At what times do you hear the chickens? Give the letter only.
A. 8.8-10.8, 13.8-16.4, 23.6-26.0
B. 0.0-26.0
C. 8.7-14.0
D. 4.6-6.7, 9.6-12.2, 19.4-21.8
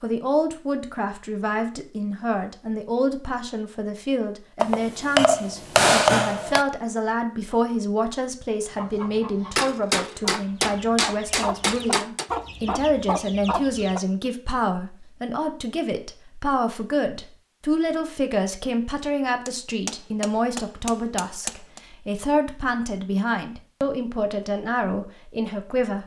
C.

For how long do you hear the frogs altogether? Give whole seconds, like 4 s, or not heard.
not heard.